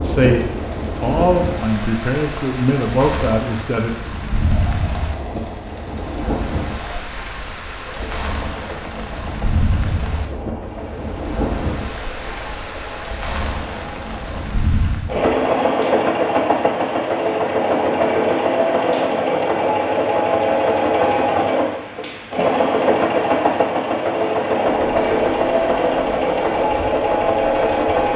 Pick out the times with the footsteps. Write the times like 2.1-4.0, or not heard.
not heard.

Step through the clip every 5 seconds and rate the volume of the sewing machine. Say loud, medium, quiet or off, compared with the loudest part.
quiet, quiet, quiet, loud, loud, loud.